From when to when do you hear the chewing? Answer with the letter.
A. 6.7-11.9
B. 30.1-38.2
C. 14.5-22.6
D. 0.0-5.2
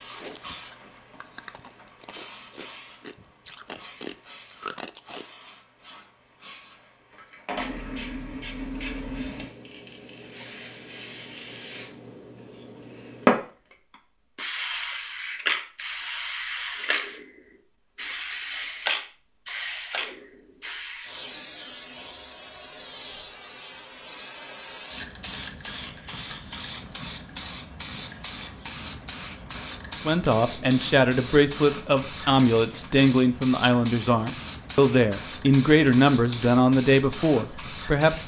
D.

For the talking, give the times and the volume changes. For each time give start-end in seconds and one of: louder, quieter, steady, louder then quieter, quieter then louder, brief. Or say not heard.
30.1-38.2 steady.